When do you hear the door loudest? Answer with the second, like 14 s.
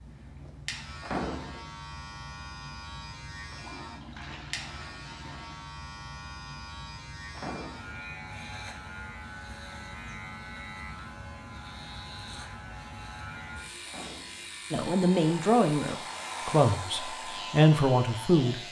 1 s.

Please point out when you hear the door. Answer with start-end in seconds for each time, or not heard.
1.0-1.7, 7.3-8.0, 13.8-14.5.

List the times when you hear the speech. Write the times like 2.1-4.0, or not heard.
14.7-18.6.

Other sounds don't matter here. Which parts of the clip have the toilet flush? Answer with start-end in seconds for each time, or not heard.
3.5-5.7.